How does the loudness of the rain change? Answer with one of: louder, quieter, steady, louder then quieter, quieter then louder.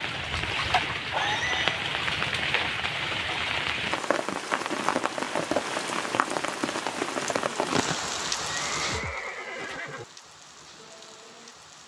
quieter.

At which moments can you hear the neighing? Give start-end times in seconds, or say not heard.
1.1-1.9, 8.4-10.1.